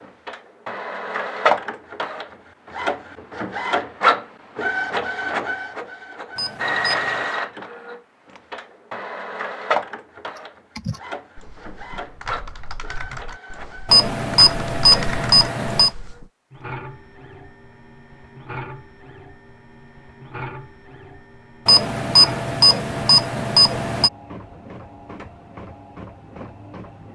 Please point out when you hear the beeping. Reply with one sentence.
The beeping can be heard from 6.3 to 7.3 s, from 13.8 to 15.9 s and from 21.6 to 24.1 s.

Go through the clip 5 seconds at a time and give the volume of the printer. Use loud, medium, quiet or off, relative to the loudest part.
loud, loud, quiet, quiet, quiet, quiet.